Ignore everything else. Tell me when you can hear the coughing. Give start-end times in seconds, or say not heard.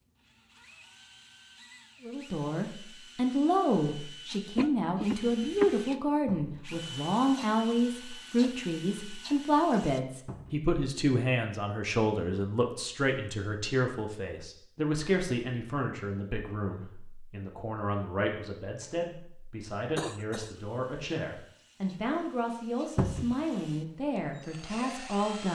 4.5-5.8, 19.9-20.6.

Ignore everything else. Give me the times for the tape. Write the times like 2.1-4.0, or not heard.
not heard.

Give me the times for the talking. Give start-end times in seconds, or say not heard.
2.0-25.5.